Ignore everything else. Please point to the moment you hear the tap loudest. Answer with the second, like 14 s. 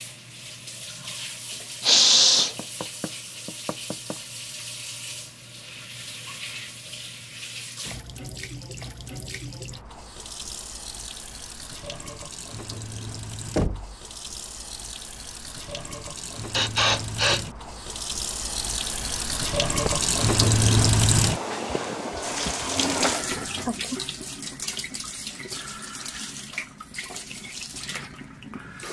21 s.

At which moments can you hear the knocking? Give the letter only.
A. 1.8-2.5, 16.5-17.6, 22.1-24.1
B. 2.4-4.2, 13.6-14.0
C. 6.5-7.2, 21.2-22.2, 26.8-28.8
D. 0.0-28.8
B.